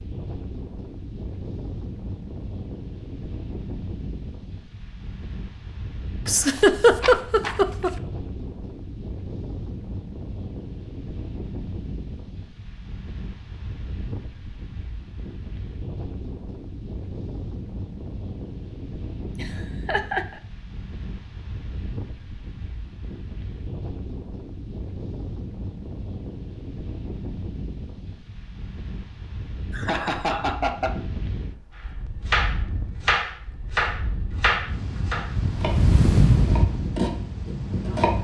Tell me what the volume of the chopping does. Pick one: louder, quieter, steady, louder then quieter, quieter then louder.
quieter then louder.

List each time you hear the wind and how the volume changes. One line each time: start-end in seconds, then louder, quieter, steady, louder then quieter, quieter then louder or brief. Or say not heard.
0.0-38.1 louder.